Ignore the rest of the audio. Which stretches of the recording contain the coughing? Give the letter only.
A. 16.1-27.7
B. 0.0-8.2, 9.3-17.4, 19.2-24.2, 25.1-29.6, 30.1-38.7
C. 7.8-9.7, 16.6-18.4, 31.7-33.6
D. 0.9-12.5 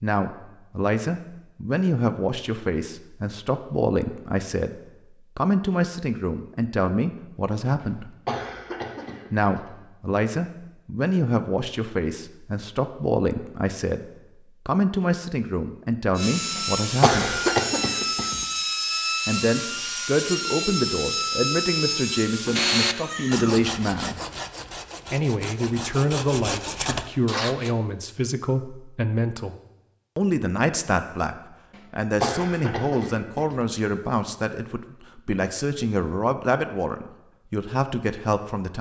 C.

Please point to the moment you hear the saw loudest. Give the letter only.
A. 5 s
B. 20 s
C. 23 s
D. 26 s
C.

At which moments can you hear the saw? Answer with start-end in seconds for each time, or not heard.
16.1-27.7.